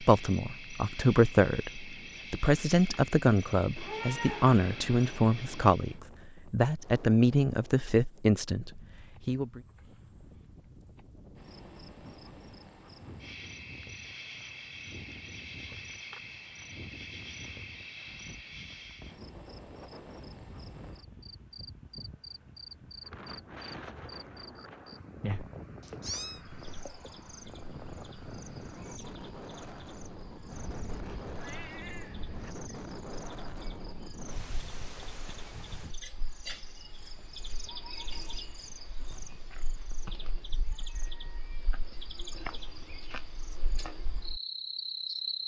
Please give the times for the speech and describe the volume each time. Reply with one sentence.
The speech can be heard from 0.0 to 9.6 s, at a steady volume.